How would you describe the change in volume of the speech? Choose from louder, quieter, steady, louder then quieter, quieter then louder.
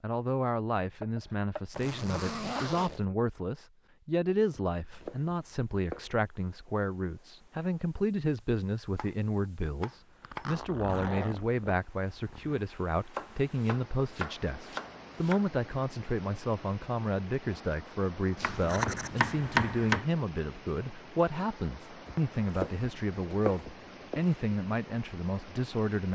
steady.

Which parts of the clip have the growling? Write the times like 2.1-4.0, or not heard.
not heard.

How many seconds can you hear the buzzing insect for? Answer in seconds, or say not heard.
not heard.